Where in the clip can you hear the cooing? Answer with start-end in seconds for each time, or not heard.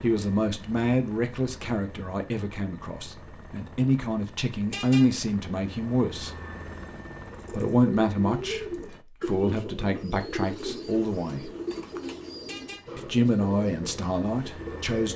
7.2-15.1.